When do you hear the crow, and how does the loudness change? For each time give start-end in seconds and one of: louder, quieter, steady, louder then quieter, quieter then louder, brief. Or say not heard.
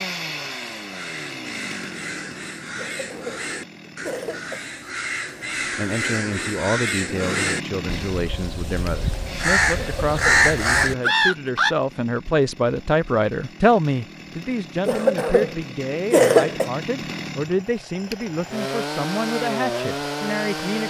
0.1-11.8 louder.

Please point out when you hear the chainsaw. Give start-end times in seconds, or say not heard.
0.0-4.6, 7.0-20.8.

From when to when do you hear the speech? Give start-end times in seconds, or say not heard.
5.8-20.8.